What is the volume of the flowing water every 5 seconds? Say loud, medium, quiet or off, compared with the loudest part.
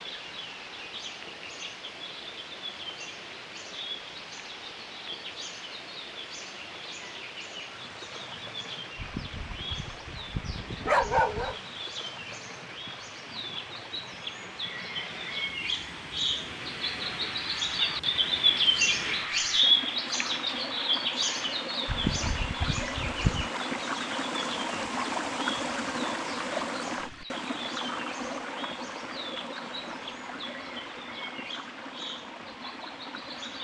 medium, medium, medium, medium, loud, loud, medium.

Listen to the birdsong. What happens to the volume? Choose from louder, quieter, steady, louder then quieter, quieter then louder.
louder then quieter.